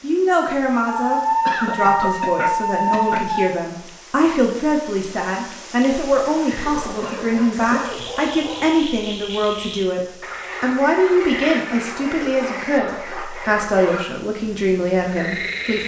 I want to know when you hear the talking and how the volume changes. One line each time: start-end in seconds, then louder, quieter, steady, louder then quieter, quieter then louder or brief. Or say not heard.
0.0-15.8 steady.